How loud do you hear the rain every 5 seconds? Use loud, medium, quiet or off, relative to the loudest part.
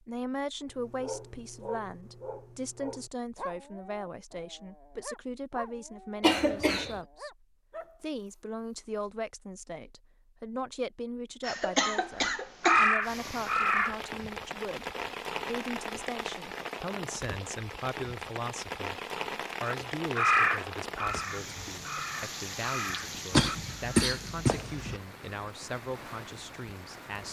off, off, loud, loud, loud, medium.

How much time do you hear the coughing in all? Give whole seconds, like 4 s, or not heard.
4 s.